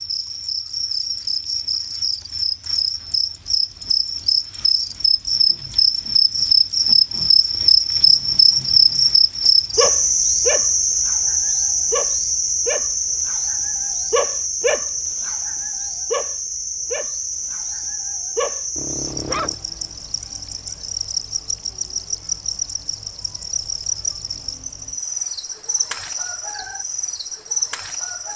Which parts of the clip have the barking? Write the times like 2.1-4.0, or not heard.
9.8-19.6.